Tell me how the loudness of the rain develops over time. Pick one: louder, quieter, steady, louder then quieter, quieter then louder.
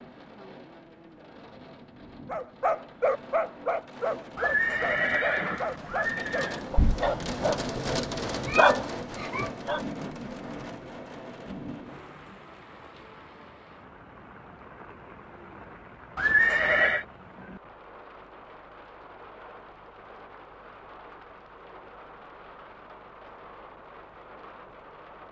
louder then quieter.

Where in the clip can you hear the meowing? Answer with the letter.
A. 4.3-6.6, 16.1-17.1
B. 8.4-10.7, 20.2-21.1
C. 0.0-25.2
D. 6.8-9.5
D.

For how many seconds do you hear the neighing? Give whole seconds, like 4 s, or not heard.
3 s.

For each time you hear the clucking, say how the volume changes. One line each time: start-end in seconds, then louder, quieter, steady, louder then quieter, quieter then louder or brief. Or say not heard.
not heard.